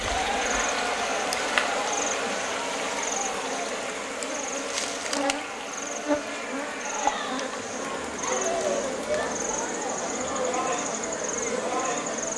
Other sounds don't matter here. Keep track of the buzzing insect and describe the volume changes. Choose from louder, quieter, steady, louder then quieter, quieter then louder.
steady.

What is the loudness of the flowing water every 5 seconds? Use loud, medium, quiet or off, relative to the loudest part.
loud, medium, off.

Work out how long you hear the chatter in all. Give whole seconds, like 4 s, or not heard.
12 s.